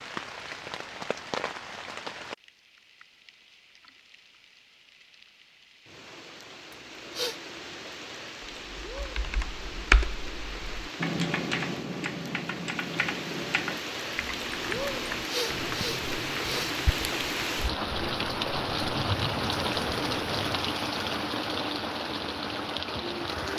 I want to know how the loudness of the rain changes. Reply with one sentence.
The loudness of the rain goes up.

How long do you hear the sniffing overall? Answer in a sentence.
You can hear the sniffing for 2 seconds altogether.